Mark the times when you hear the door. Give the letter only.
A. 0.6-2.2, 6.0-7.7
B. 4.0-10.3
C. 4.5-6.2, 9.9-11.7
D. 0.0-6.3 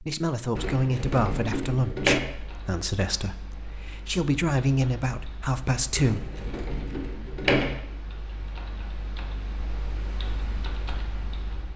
A.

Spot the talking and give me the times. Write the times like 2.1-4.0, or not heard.
0.0-6.3.